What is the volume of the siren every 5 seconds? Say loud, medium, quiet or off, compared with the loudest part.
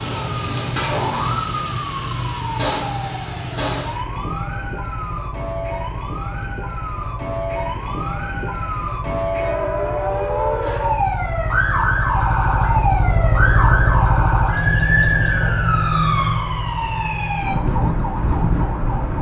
loud, medium, loud, loud.